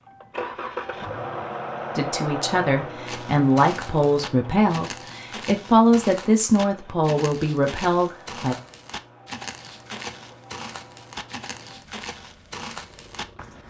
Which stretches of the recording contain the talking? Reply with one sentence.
The talking can be heard from 1.9 to 8.6 s.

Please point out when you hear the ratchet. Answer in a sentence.
The ratchet can't be heard in this clip.